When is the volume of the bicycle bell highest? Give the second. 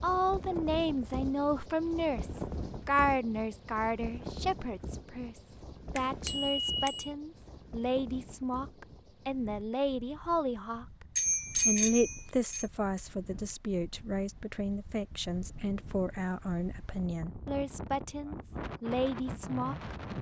12 s.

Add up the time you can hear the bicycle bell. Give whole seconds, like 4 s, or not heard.
3 s.